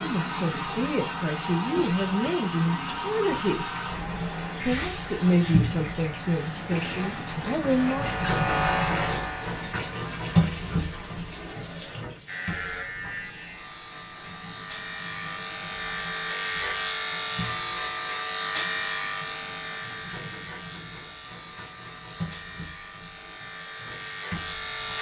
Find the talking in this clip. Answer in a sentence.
The talking can be heard from 0.0 to 3.7 s and from 4.5 to 8.1 s.